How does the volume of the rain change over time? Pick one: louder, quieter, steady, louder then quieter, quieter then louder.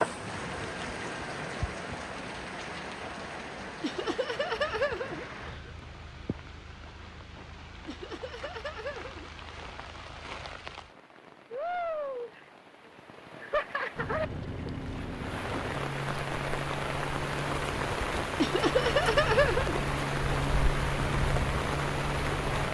quieter then louder.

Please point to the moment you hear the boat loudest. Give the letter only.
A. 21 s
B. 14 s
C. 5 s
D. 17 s
A.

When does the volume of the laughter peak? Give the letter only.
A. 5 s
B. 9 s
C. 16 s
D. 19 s
D.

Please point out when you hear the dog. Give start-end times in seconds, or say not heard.
not heard.